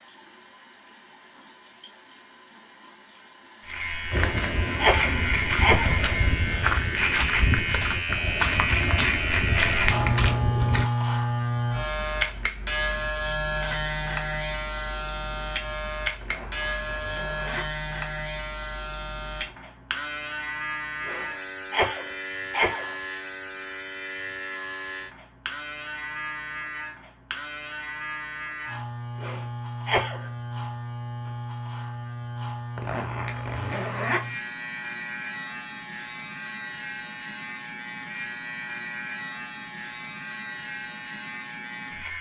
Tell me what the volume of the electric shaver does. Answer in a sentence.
The volume of the electric shaver goes down.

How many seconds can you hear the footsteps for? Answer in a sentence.
You can hear the footsteps for 7 seconds altogether.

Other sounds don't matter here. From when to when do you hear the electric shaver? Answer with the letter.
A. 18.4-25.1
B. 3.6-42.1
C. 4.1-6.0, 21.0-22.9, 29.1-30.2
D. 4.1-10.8
B.